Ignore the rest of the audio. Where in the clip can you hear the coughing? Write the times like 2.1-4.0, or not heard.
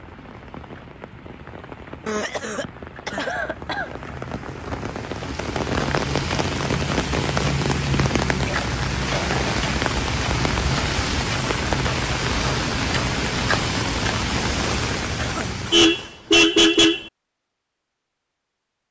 2.0-4.0, 8.4-9.3, 15.2-15.9.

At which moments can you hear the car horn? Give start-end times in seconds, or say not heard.
15.5-17.1.